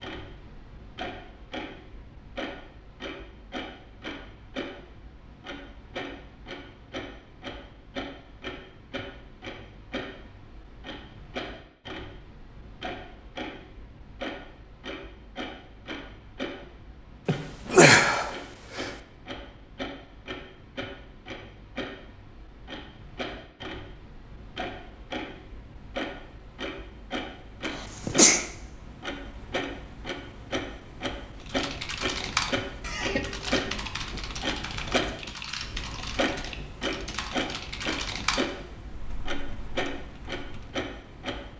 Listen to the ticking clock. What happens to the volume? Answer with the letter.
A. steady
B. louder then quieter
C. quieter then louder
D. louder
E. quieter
D.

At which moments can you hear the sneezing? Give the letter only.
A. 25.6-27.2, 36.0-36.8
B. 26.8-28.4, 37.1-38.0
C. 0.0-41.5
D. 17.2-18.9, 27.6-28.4
D.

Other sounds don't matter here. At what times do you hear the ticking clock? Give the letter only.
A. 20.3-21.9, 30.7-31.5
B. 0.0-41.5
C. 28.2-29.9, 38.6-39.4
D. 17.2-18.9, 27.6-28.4
B.